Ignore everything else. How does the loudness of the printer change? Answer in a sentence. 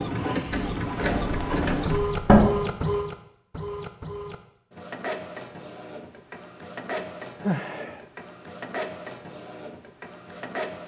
The loudness of the printer goes down.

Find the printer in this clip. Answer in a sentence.
You can hear the printer from 0.0 to 10.8 s.